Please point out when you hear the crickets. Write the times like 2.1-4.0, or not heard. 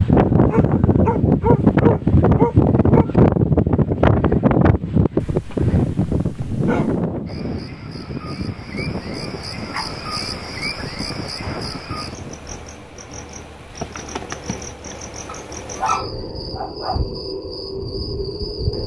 7.2-18.8.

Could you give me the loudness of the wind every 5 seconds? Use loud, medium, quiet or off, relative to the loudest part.
loud, medium, quiet, off.